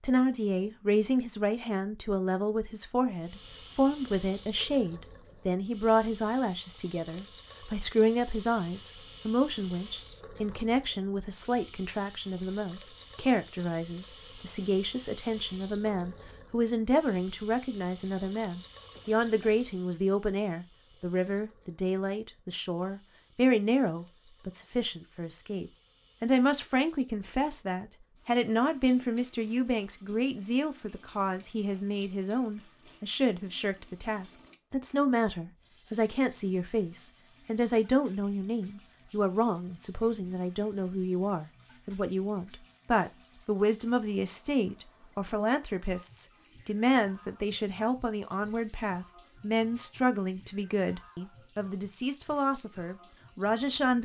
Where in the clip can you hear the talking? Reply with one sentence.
You can hear the talking from 0.0 to 54.0 s.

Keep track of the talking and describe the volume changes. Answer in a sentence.
The volume of the talking stays about the same.